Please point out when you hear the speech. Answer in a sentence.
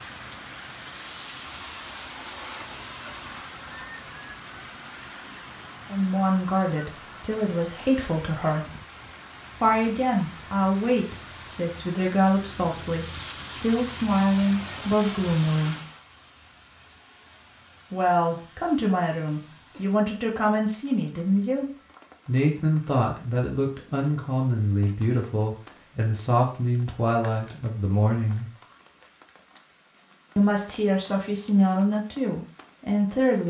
You can hear the speech from 5.9 to 8.7 s, from 9.6 to 15.8 s, from 17.9 to 21.6 s, from 22.2 to 28.5 s and from 30.4 to 33.4 s.